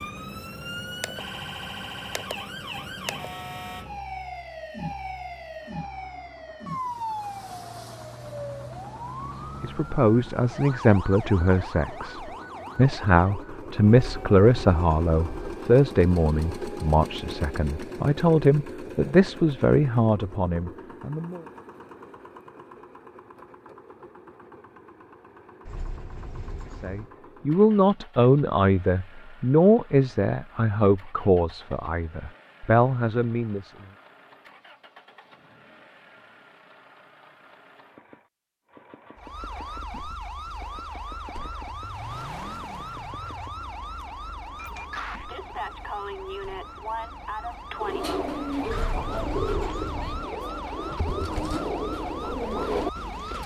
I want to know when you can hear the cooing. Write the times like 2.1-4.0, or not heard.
47.8-53.4.